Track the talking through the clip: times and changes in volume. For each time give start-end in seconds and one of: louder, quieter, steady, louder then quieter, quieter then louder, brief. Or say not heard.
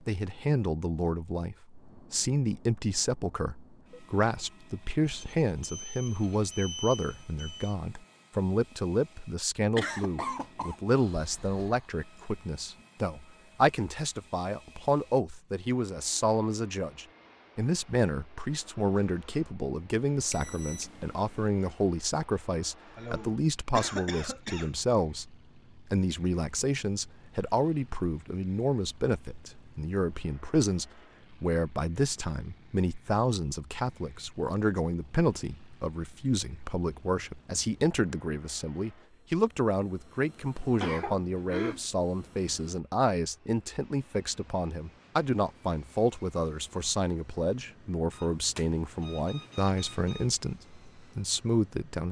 0.1-52.0 steady.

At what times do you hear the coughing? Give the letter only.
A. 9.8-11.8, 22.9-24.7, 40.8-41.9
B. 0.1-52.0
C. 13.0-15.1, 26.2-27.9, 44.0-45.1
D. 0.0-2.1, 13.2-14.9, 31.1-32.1
A.